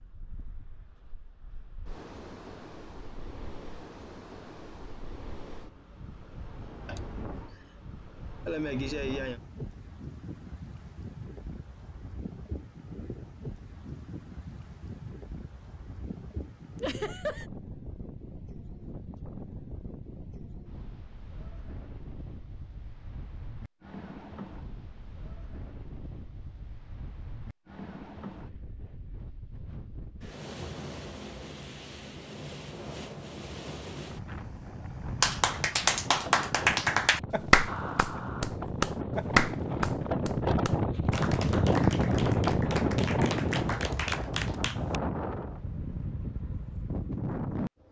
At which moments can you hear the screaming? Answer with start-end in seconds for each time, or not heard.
not heard.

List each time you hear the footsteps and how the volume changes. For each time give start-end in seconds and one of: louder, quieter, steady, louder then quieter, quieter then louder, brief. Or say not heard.
not heard.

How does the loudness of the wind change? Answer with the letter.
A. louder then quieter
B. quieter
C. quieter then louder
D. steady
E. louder
E.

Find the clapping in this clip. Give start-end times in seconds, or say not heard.
35.2-45.0.